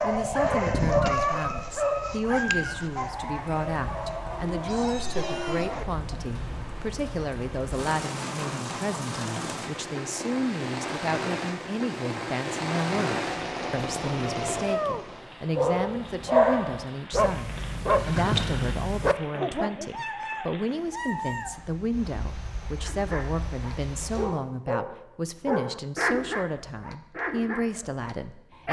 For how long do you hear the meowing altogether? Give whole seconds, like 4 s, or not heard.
3 s.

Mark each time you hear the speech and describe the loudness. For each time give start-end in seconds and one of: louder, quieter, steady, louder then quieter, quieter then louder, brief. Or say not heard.
0.0-28.6 steady.